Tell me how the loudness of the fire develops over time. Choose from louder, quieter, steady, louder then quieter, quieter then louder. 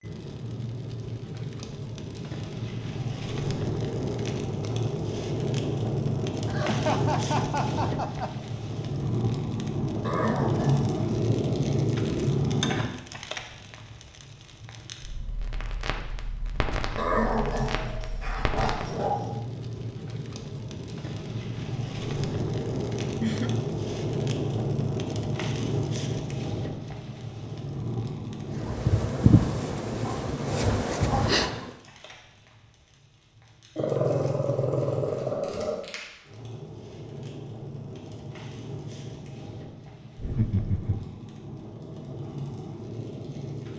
quieter.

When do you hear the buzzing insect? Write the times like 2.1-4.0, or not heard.
28.6-31.6.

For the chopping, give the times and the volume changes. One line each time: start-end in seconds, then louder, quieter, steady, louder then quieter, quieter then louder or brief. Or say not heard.
not heard.